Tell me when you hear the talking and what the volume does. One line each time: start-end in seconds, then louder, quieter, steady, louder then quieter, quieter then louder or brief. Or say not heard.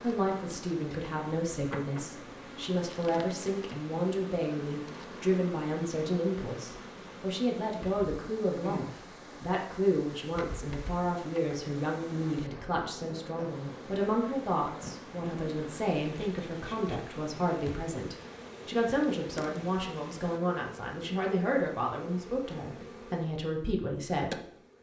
0.0-24.7 steady.